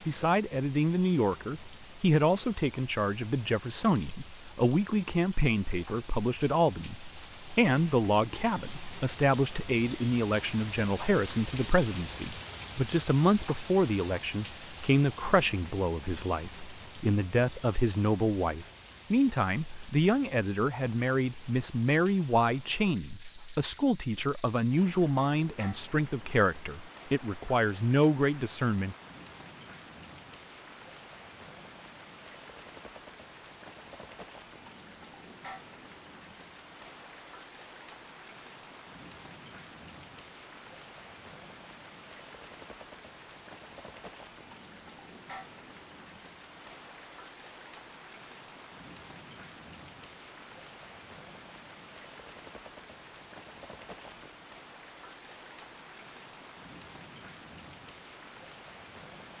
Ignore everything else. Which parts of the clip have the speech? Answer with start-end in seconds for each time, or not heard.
0.1-28.9.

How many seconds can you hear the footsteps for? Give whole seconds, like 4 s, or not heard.
not heard.